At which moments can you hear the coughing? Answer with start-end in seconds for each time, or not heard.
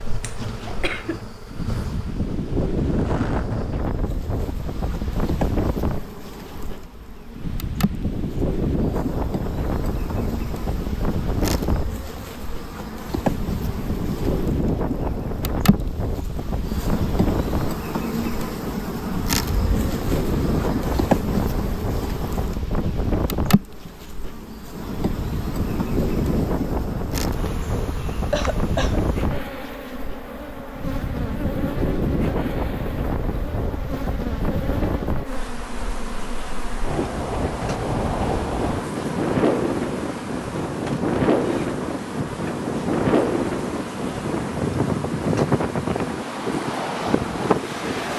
0.2-1.2, 27.9-29.0.